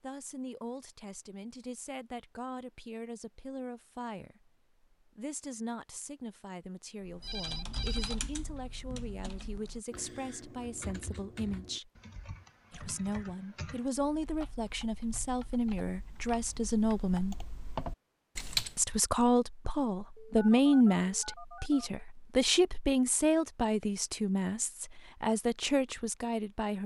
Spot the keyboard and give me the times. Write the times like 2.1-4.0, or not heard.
7.0-18.8.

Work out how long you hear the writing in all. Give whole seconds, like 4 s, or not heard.
not heard.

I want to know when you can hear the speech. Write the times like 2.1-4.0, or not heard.
0.0-11.9, 12.7-17.4, 18.8-26.8.